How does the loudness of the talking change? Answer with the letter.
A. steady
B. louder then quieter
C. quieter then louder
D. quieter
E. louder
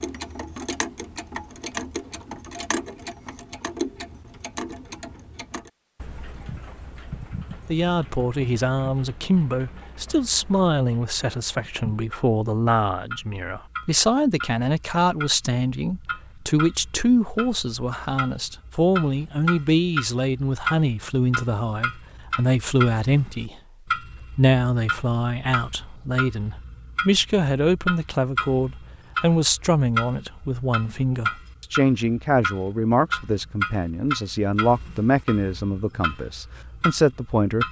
A.